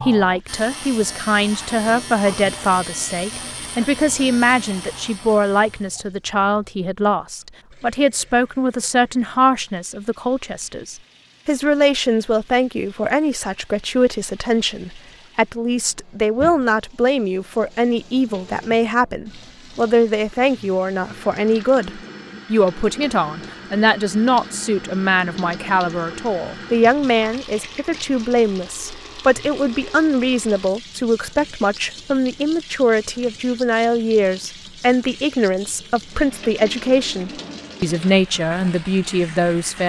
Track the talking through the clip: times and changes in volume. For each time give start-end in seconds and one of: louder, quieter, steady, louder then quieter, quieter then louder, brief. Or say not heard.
0.0-39.8 steady.